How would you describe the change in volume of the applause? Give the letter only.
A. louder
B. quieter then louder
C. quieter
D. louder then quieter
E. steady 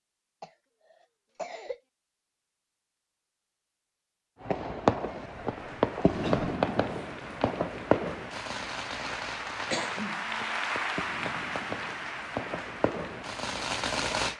D.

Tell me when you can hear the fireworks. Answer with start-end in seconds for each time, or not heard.
4.4-14.3.